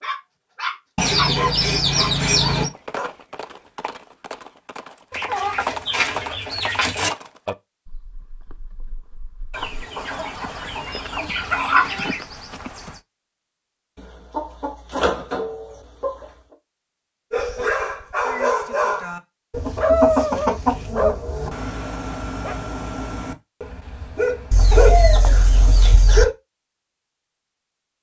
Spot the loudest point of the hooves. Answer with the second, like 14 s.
6 s.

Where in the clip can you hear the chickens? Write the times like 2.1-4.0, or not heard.
0.9-2.7, 5.1-7.1, 9.5-12.2, 13.9-16.2, 19.5-21.5, 24.5-26.2.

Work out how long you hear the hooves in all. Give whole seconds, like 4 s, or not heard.
10 s.